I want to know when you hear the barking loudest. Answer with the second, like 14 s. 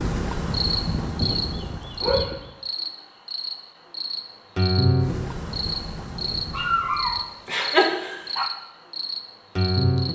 8 s.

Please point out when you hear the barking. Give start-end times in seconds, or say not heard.
0.6-2.5, 6.5-8.5.